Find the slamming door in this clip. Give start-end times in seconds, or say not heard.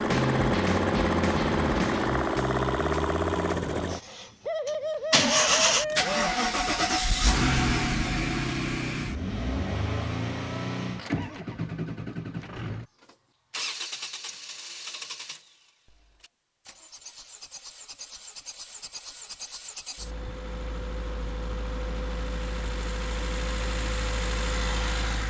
not heard.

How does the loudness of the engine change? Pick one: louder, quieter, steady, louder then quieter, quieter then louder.
quieter then louder.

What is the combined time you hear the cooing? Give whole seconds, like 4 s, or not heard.
2 s.